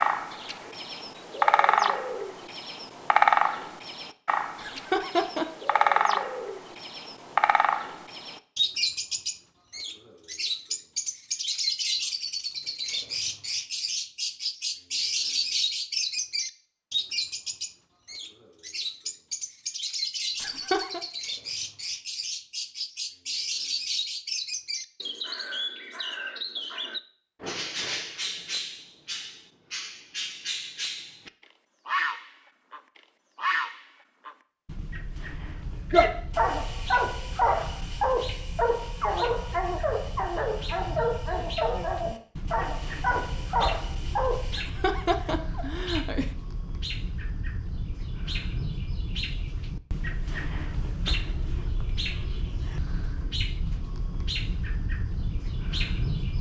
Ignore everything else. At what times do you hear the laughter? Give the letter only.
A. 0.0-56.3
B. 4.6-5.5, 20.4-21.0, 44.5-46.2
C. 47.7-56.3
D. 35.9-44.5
B.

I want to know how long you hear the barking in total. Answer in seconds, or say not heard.
9 s.